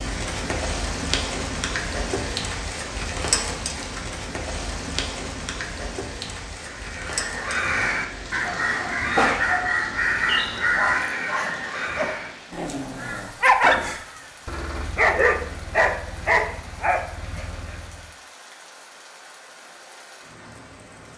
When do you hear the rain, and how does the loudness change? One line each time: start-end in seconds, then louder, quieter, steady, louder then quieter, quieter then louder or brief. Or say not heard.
0.0-21.1 quieter.